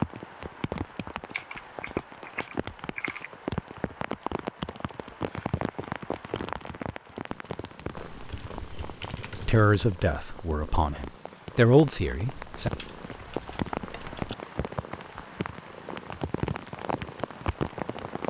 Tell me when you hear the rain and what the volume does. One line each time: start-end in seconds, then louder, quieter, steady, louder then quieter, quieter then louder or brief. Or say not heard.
0.0-18.2 quieter then louder.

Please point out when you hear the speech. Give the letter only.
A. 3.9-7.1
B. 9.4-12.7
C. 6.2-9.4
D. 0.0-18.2
B.